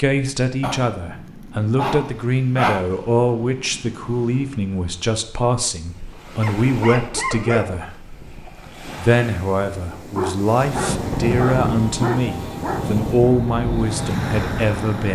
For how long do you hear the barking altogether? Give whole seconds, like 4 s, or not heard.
7 s.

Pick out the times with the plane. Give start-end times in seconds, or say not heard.
10.7-15.1.